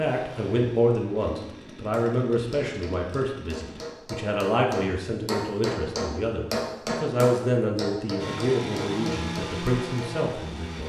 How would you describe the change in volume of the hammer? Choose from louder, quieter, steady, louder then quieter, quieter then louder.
louder then quieter.